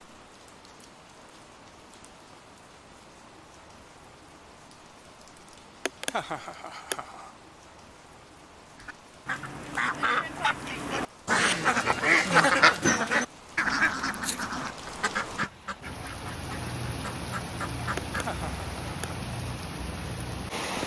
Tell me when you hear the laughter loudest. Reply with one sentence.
The volume of the laughter peaks at 6 seconds.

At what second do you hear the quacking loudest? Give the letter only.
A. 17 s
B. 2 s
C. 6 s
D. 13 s
D.